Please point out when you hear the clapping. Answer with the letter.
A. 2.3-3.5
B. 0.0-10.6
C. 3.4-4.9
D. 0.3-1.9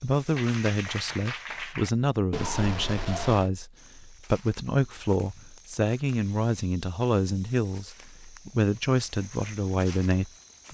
D.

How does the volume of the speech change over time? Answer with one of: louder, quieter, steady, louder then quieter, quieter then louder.
steady.